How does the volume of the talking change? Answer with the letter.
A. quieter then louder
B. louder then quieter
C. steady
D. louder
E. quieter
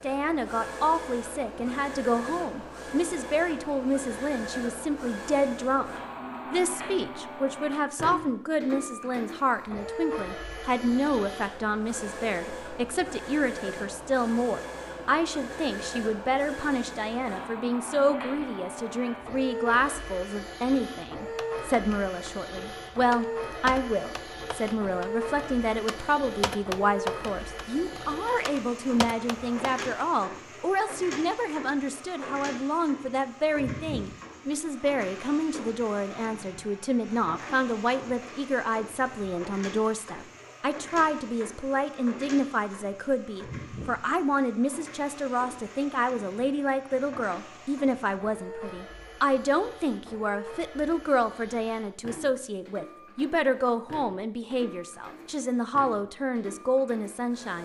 C.